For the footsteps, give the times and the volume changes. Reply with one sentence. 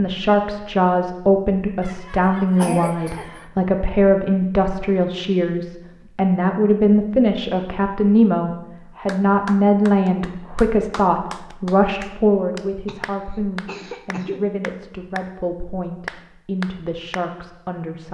You can't hear the footsteps here.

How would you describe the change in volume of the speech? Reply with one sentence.
The loudness of the speech goes down.